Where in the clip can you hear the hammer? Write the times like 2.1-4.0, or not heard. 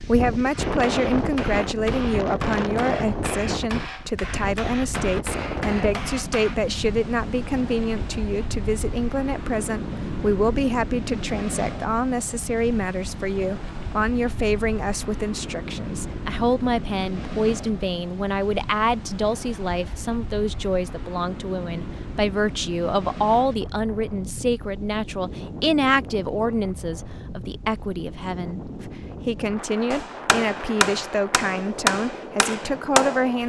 0.5-6.6, 29.9-33.4.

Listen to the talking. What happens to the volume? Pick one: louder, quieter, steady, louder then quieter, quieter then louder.
steady.